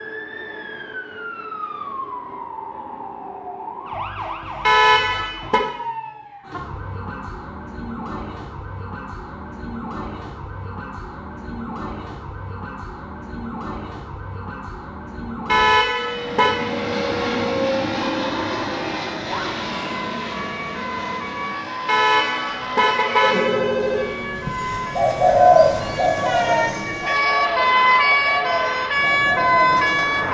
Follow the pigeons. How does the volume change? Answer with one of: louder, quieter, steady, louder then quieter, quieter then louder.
quieter.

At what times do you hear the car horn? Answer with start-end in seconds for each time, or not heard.
4.7-5.6, 15.4-16.6, 21.9-23.6.